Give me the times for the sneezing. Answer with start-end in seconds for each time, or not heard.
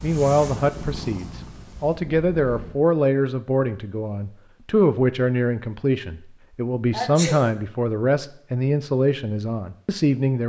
6.9-7.4.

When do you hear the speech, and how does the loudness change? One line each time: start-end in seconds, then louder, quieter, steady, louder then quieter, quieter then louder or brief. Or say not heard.
0.0-10.4 steady.